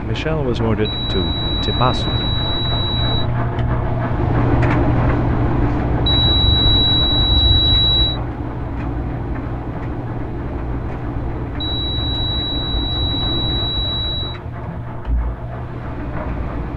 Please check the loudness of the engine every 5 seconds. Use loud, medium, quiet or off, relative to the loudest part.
loud, loud, medium, medium.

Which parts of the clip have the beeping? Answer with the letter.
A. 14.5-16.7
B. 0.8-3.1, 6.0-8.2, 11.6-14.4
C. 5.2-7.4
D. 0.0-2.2
B.